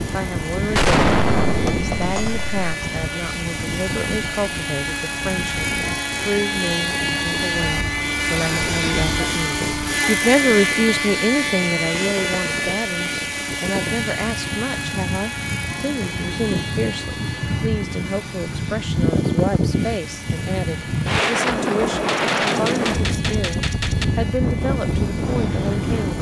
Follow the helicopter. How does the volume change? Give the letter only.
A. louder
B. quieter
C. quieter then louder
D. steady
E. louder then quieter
E.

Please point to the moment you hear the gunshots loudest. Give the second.
1 s.